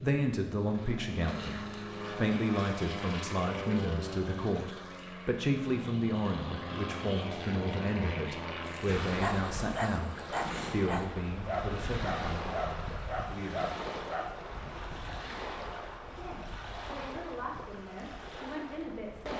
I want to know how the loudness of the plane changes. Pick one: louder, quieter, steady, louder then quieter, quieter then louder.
steady.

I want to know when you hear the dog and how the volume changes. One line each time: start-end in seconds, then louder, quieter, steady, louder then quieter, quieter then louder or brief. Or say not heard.
8.7-14.4 steady.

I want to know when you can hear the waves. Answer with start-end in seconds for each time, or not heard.
8.8-19.3.